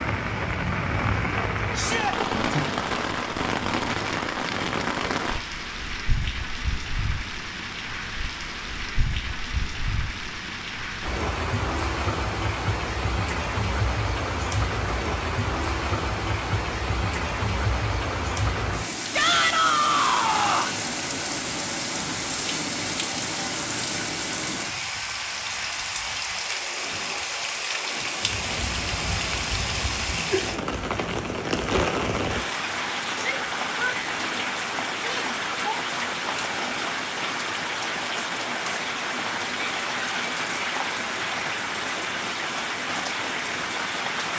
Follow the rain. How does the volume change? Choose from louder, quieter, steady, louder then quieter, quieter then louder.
steady.